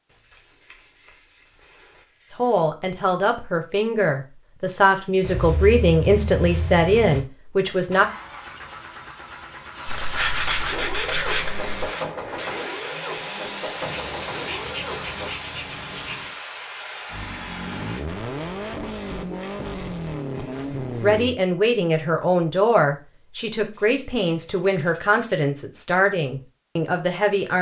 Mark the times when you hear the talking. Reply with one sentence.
The talking can be heard from 2.3 to 8.1 s and from 20.6 to 27.5 s.